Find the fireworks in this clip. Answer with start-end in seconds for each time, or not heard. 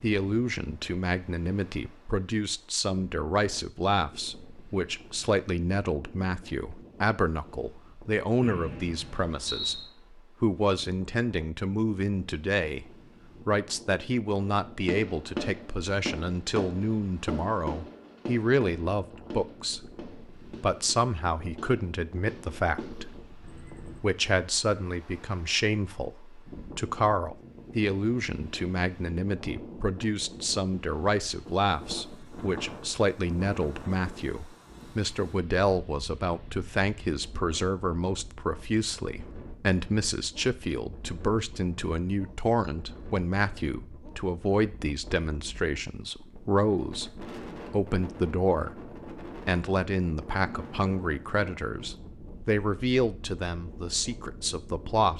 14.3-24.1.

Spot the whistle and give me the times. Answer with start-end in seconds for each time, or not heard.
8.4-9.9.